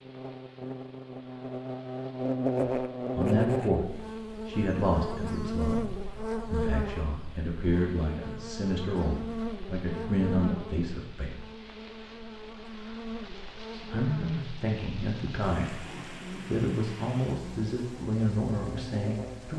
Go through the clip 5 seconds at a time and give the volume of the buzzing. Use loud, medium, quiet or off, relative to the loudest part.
loud, loud, medium, medium.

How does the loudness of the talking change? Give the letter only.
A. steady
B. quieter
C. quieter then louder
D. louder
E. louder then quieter
A.